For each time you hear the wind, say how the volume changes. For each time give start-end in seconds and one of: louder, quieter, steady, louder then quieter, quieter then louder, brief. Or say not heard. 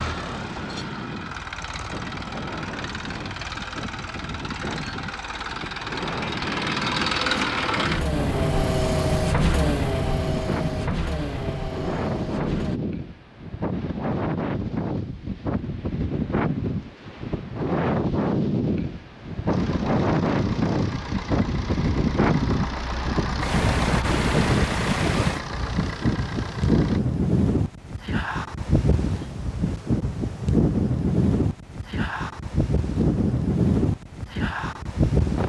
0.0-35.4 louder.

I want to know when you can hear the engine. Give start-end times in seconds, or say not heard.
0.0-12.8, 19.5-27.0.